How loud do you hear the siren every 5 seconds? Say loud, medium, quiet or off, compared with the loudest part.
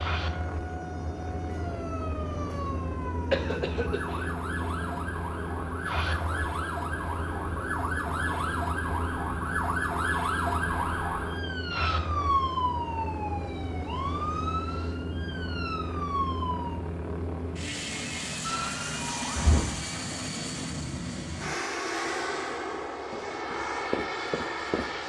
medium, loud, loud, loud, off.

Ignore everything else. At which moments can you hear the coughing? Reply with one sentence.
The coughing can be heard from 3.3 to 4.2 s.